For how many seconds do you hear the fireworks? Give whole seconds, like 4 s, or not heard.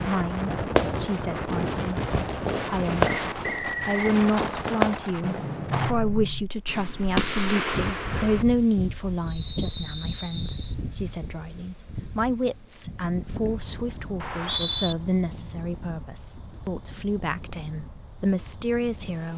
8 s.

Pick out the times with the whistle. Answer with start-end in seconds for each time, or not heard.
3.0-4.0, 9.2-10.8, 14.2-14.9.